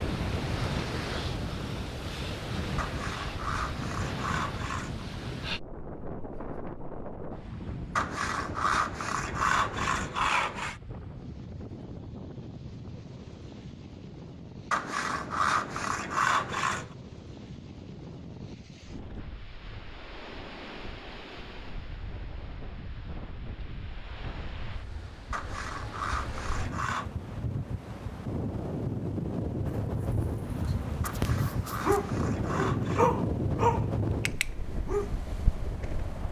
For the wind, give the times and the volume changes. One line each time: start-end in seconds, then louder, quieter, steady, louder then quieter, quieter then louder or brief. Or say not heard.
0.0-36.2 quieter then louder.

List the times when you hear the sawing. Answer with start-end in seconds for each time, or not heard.
2.8-5.0, 8.0-10.8, 14.7-16.9, 25.3-27.1, 31.0-33.1.